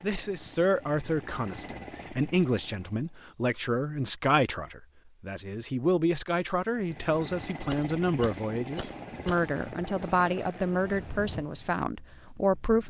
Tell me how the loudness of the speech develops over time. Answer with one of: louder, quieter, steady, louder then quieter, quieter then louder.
steady.